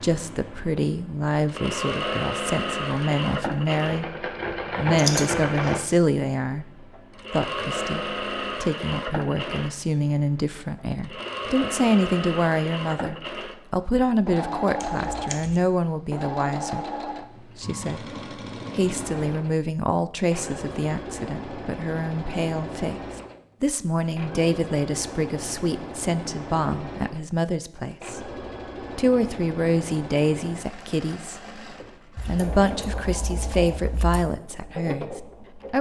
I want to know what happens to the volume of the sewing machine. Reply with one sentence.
The volume of the sewing machine goes down.